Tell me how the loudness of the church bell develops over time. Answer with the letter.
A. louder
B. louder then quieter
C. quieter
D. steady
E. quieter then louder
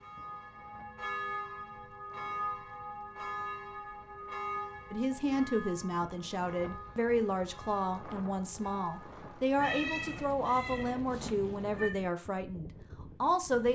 C.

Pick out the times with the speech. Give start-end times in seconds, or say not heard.
4.9-13.7.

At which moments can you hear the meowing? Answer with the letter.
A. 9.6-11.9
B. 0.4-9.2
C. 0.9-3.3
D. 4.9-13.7
A.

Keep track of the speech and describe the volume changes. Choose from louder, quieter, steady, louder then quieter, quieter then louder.
steady.